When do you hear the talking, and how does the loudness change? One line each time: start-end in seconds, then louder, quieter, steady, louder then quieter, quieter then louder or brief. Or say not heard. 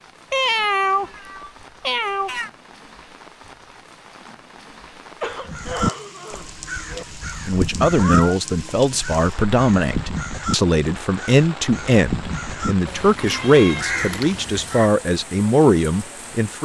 7.5-16.5 steady.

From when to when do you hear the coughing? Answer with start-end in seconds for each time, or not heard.
5.0-7.0.